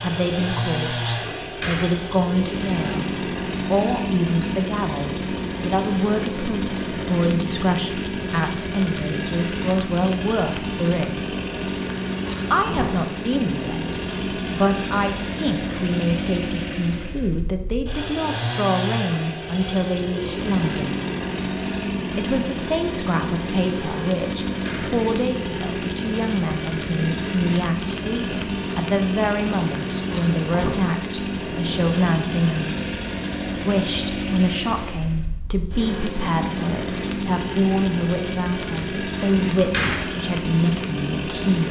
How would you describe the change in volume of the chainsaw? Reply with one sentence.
The loudness of the chainsaw stays about the same.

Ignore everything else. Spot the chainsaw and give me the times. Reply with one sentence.
You can hear the chainsaw from 0.0 to 41.6 s.